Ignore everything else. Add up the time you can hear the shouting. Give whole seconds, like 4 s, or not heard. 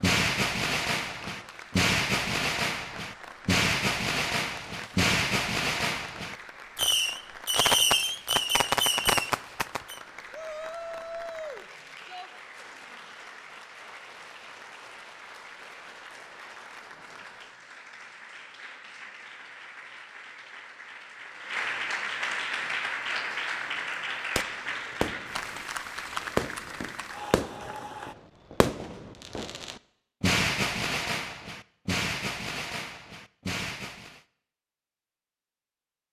2 s.